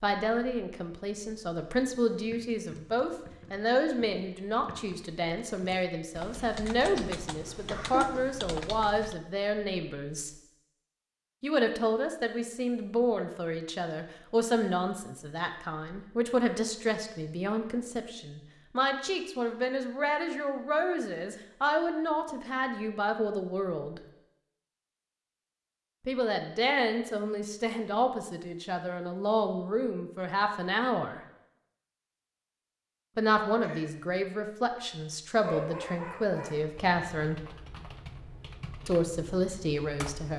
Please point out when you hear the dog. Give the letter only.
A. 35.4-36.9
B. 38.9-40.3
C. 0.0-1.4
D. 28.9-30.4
A.